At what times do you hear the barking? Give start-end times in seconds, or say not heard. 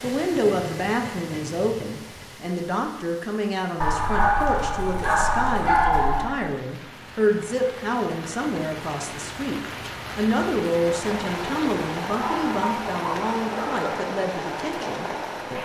3.8-6.3, 12.1-14.1.